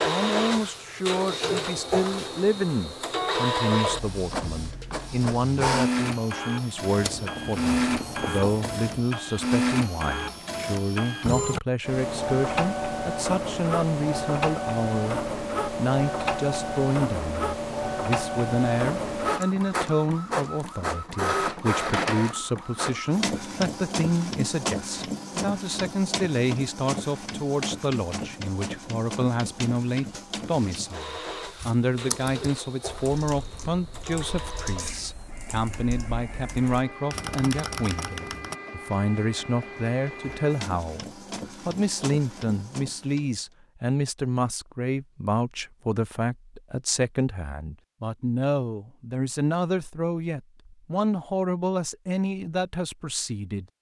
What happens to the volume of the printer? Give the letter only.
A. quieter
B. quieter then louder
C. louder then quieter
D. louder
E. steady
A.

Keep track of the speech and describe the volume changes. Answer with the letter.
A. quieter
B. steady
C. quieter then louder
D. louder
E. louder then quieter
B.